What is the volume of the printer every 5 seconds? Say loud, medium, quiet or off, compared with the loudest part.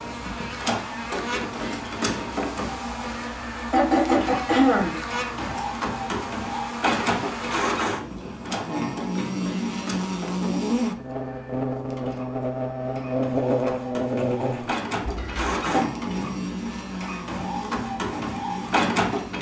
loud, loud, medium, loud.